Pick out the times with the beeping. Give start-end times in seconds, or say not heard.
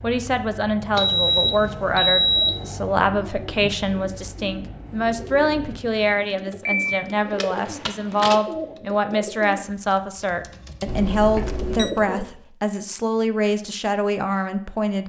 0.9-2.7, 6.7-8.4, 10.8-11.9.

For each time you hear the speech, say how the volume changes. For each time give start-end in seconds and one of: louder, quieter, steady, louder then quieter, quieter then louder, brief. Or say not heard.
0.0-15.0 steady.